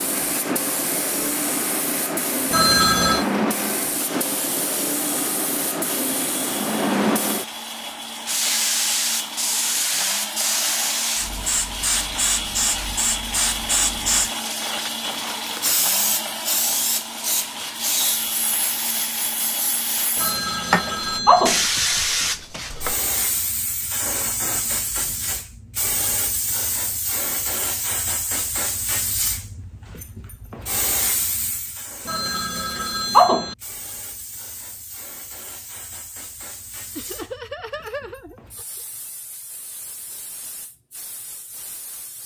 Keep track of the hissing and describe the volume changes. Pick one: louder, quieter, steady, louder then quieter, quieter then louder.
quieter.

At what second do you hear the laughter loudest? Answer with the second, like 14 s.
37 s.